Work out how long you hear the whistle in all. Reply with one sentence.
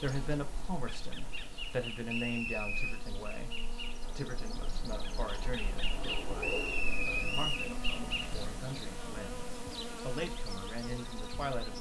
The whistle can be heard for 2 seconds in total.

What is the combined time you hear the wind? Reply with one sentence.
The wind can be heard for 12 seconds in total.